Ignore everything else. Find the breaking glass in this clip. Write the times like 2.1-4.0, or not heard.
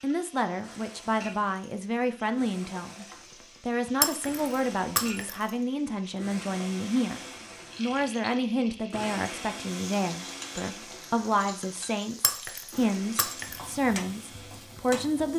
4.0-5.5, 12.2-13.8.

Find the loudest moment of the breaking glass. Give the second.
4 s.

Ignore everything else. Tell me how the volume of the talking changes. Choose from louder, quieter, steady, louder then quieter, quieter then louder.
steady.